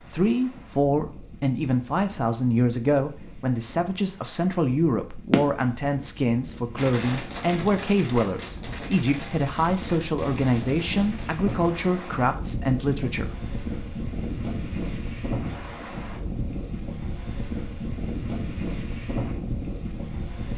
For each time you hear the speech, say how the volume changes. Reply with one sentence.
The speech can be heard from 0.0 to 13.3 s, at a steady volume.